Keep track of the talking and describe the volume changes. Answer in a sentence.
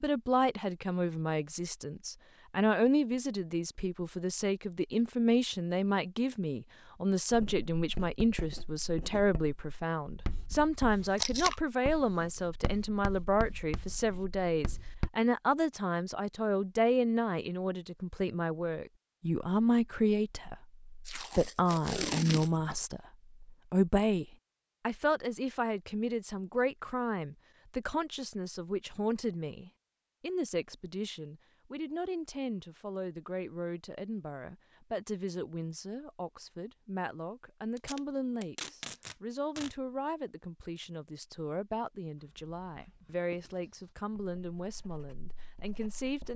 The loudness of the talking goes down.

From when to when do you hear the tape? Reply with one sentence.
You can hear the tape from 11.2 to 11.6 s, from 21.1 to 22.8 s and from 37.8 to 39.7 s.